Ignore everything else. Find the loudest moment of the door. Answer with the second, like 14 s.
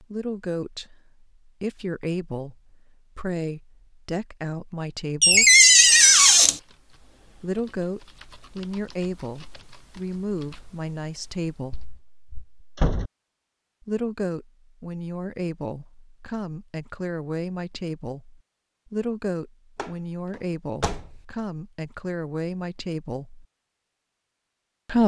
6 s.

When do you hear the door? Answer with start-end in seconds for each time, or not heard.
5.2-6.6, 11.7-13.1, 19.8-21.2.